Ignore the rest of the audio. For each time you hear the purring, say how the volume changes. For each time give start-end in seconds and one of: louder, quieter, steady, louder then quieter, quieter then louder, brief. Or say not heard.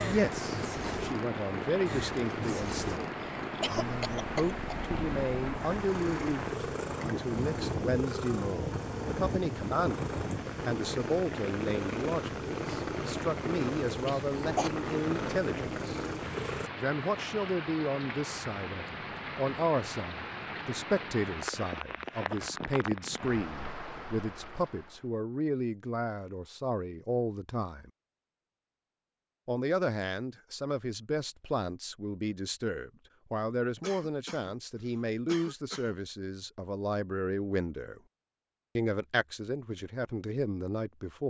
0.0-16.7 steady.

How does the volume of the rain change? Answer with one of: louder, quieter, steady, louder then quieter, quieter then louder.
steady.